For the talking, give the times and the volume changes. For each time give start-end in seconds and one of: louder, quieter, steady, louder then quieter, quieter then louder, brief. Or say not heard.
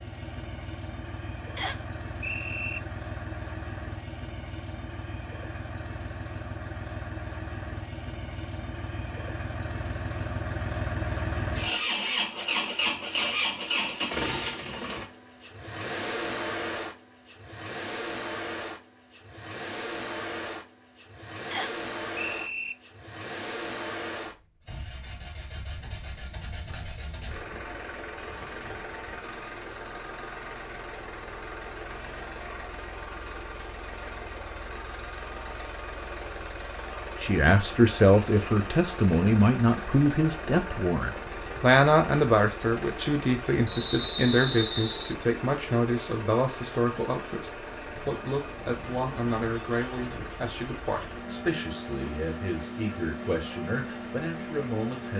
37.2-55.1 quieter.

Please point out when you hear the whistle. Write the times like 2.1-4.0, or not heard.
1.6-2.8, 21.5-22.8, 43.6-45.1.